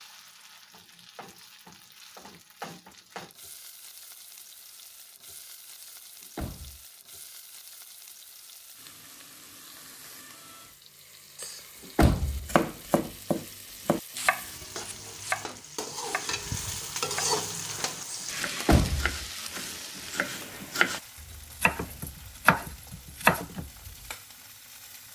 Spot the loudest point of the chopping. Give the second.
23 s.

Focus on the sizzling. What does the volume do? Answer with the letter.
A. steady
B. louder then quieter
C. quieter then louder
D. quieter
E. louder
B.